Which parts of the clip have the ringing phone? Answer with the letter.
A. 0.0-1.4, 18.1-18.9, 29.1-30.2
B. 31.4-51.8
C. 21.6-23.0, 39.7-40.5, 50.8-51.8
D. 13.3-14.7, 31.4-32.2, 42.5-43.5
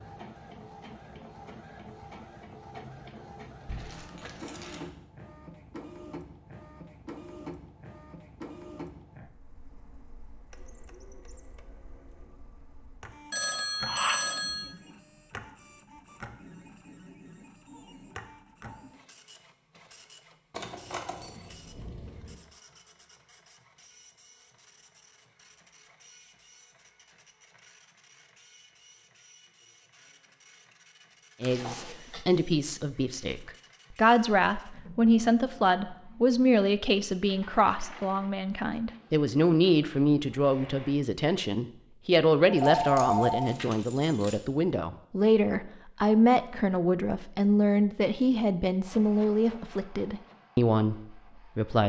D.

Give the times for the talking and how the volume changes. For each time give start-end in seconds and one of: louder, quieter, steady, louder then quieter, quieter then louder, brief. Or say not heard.
31.4-51.8 steady.